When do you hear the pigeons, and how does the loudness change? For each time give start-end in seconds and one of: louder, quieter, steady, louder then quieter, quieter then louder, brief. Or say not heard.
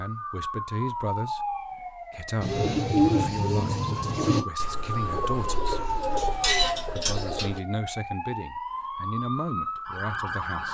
2.4-7.6 quieter then louder.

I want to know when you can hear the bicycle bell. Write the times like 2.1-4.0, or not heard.
not heard.